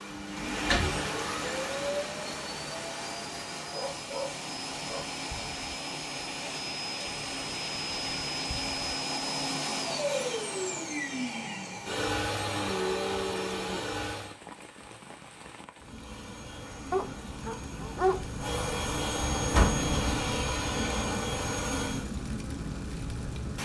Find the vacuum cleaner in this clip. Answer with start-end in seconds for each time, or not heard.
0.0-14.3, 15.8-22.1.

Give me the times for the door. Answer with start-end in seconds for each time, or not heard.
0.3-1.0, 19.4-19.9.